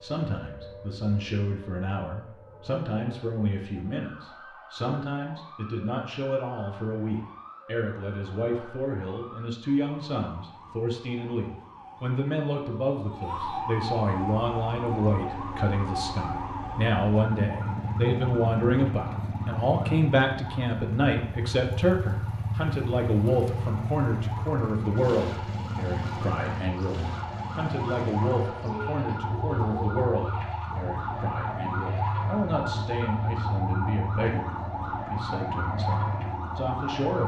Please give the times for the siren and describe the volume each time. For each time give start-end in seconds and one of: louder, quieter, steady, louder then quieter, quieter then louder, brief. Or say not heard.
0.0-37.2 louder.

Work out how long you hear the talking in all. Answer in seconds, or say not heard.
37 s.